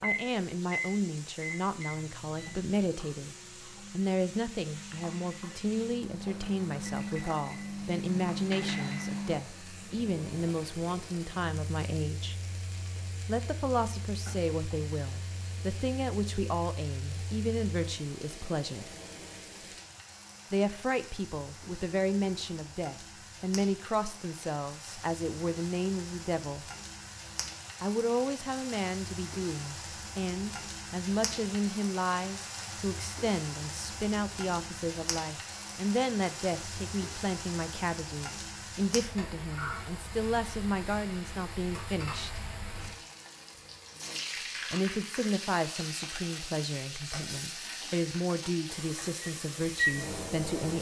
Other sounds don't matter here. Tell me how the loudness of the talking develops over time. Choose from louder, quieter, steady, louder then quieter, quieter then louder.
steady.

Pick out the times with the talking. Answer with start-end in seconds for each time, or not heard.
0.0-12.3, 13.2-18.9, 20.5-26.6, 27.8-42.5, 44.7-50.7.